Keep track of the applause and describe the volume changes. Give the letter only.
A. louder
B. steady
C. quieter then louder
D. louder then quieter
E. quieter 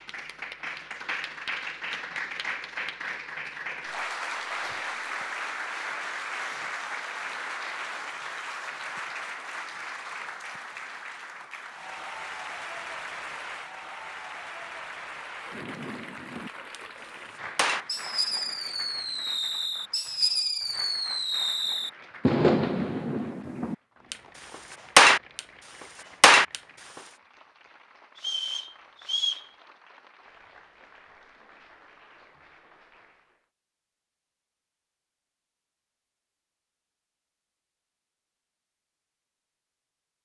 E.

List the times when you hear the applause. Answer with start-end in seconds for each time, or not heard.
0.0-33.5.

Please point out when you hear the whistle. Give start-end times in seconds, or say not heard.
28.1-29.4.